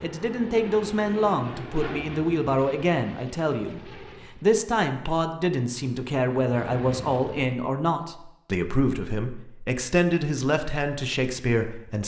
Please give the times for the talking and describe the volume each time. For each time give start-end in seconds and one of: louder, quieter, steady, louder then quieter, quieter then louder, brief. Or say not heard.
0.0-12.0 steady.